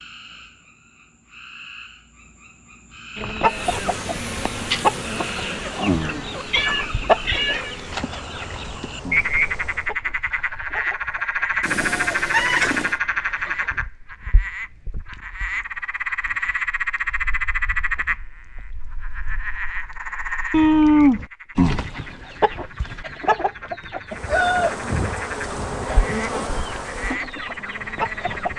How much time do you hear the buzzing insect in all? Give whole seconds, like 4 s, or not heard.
11 s.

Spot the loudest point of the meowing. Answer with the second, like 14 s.
21 s.